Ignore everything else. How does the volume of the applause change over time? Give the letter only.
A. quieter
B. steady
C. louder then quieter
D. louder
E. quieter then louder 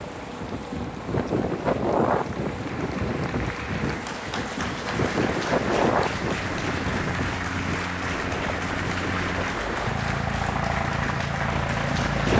D.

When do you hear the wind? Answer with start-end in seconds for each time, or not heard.
0.0-12.3.